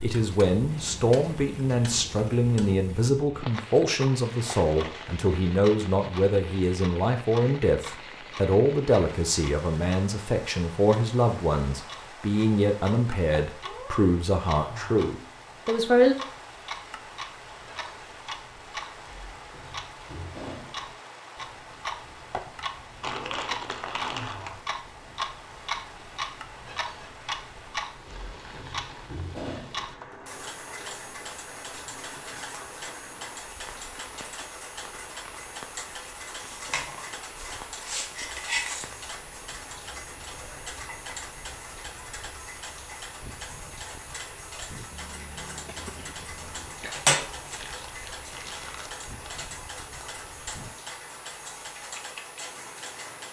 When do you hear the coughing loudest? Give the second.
46 s.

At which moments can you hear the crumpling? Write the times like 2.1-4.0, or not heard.
4.3-5.2, 23.0-24.6, 47.5-49.4.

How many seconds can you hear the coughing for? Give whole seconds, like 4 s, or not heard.
2 s.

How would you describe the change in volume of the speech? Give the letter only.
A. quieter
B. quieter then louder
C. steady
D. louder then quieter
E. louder
C.